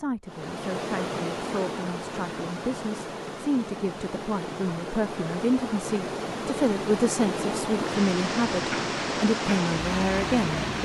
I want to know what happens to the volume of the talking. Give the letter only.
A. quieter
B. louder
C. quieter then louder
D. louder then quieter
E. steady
B.